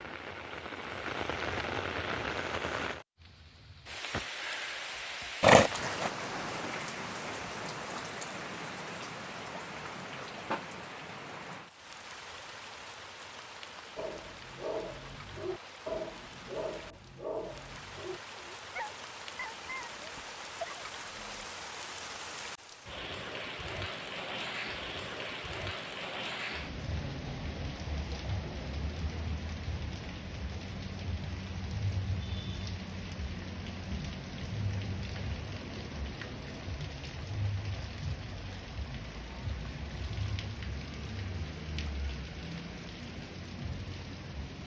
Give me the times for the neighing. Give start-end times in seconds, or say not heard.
5.4-6.1.